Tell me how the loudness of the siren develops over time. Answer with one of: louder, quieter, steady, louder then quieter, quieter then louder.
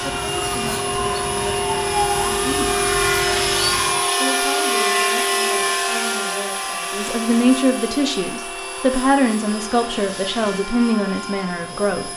louder then quieter.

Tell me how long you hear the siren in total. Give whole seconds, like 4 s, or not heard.
4 s.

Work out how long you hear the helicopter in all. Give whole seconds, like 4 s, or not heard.
12 s.